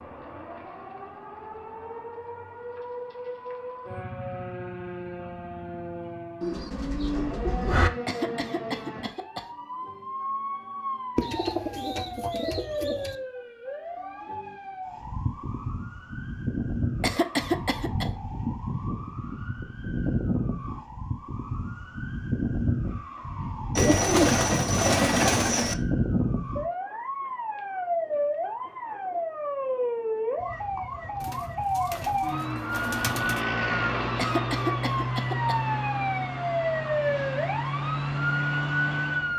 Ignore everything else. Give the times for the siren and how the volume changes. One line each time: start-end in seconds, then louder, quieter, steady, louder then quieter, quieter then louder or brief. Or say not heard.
0.0-39.3 louder.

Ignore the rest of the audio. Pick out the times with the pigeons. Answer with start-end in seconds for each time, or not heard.
6.4-7.9, 11.2-13.2, 23.8-25.8, 31.2-33.4.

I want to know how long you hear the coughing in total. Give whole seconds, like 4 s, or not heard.
4 s.